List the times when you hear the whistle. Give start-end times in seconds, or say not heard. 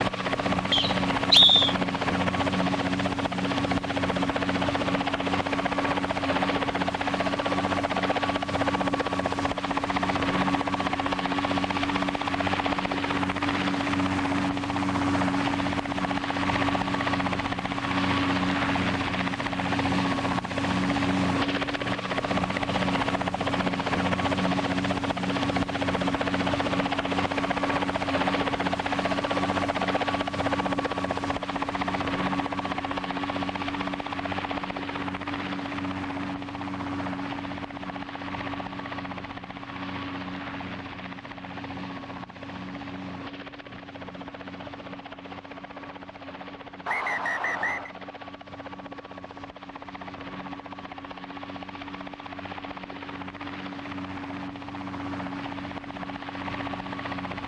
0.7-1.8, 46.9-47.9.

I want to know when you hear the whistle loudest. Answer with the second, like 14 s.
1 s.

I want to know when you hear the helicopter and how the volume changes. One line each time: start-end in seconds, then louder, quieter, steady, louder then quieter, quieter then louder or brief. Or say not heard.
0.0-57.4 quieter.